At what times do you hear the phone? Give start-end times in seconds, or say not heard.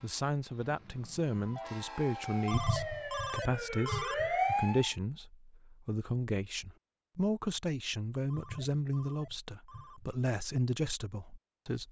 2.5-4.3, 8.3-10.1.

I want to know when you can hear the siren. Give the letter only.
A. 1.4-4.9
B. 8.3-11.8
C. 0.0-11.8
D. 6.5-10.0
A.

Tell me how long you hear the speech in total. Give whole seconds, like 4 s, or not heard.
12 s.